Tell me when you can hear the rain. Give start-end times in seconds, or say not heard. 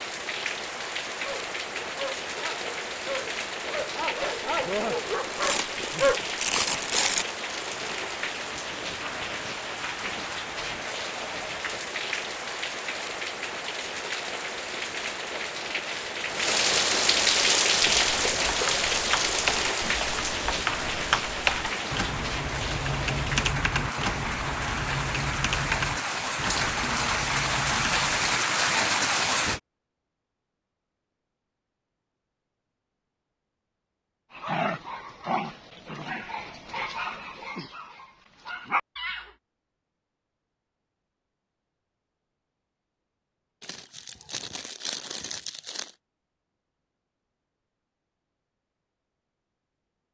0.0-29.6.